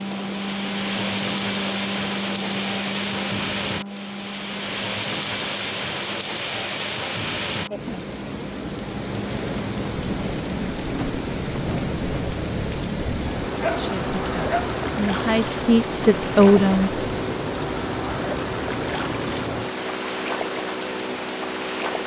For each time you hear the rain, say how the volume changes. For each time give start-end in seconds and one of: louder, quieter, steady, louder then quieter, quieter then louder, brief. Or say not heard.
0.0-22.0 steady.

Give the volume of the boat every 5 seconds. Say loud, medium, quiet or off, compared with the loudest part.
loud, medium, loud, loud, loud.